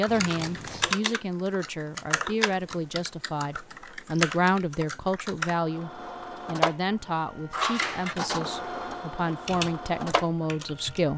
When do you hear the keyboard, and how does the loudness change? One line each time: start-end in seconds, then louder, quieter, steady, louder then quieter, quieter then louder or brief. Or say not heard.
0.0-5.5 quieter then louder
9.4-11.1 brief.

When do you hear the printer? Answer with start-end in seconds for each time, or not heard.
5.5-11.1.